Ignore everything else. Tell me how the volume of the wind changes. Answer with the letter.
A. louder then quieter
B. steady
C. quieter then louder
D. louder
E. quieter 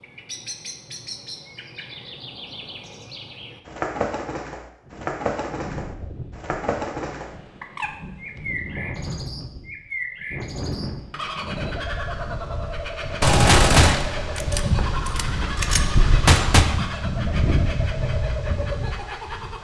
D.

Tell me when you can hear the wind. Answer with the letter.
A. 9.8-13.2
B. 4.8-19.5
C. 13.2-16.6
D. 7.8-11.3
B.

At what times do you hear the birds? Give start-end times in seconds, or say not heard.
0.0-19.5.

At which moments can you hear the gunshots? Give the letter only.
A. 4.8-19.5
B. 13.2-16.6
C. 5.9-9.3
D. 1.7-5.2
B.